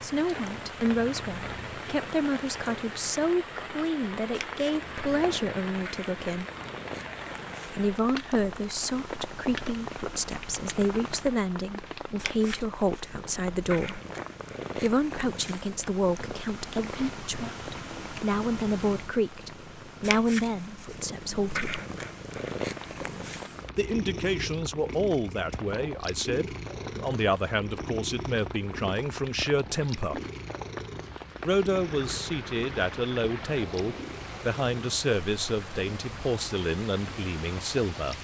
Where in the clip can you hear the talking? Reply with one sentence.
The talking can be heard from 0.0 to 6.5 s, from 7.7 to 14.0 s, from 14.8 to 21.8 s, from 23.8 to 30.2 s and from 31.4 to 38.1 s.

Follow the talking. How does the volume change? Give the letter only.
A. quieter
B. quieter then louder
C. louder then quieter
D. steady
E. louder
D.